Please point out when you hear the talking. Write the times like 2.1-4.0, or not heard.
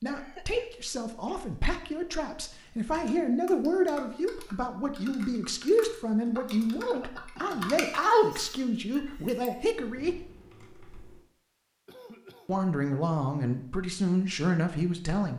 0.0-10.2, 12.4-15.3.